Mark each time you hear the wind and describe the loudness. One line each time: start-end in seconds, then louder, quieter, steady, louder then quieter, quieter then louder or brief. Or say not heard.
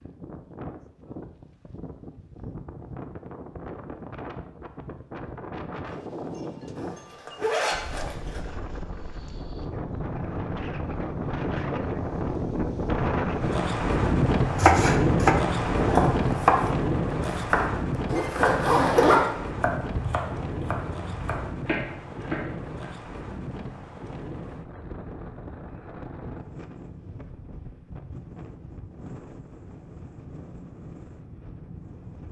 0.0-32.2 louder then quieter.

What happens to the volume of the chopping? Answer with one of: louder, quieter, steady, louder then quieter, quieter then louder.
quieter.